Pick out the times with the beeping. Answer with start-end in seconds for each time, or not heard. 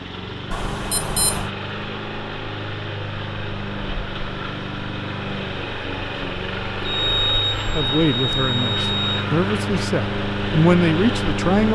0.5-1.5, 6.8-9.2.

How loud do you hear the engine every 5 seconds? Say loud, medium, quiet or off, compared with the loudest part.
medium, loud, loud.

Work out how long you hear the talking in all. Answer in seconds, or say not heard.
4 s.